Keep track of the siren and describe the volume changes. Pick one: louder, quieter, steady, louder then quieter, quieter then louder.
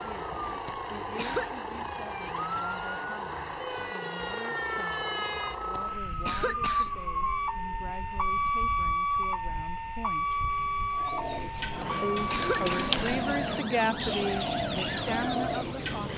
louder then quieter.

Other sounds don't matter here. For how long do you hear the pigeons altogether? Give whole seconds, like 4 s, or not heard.
5 s.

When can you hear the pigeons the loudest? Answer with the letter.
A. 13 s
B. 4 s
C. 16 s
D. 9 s
A.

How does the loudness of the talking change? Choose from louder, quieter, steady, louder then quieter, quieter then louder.
louder.